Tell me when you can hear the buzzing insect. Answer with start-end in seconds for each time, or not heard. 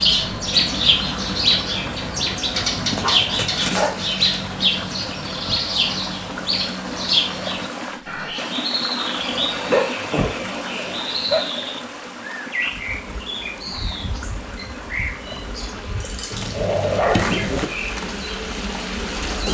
12.6-19.4.